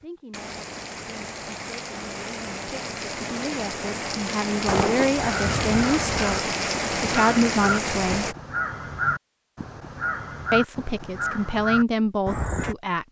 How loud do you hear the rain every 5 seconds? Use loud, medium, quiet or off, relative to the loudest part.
medium, loud, off.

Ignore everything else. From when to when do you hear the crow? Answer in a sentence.
You can hear the crow from 4.7 to 12.8 s.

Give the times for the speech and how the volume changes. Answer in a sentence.
You can hear the speech from 0.0 to 8.3 s, getting louder; and briefly from 10.5 to 13.0 s.